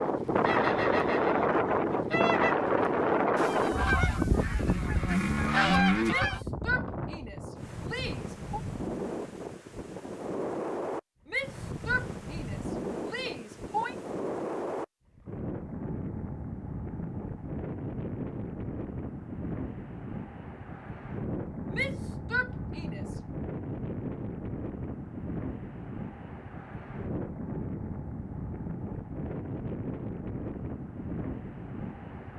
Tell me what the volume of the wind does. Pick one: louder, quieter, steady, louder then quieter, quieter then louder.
quieter.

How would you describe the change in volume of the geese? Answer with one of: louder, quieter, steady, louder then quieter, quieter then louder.
quieter then louder.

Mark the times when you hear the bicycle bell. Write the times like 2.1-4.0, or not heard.
not heard.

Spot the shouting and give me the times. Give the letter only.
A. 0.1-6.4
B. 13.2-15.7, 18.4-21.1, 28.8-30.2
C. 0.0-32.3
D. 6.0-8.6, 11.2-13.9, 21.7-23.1
D.